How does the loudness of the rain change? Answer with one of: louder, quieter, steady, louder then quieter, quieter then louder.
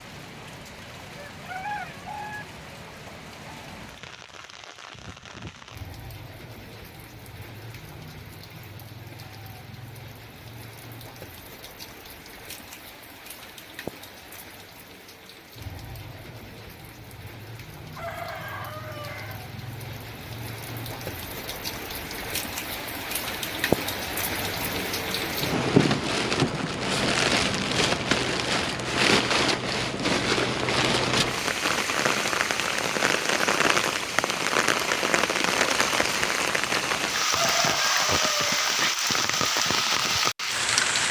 louder.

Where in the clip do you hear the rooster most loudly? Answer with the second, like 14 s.
38 s.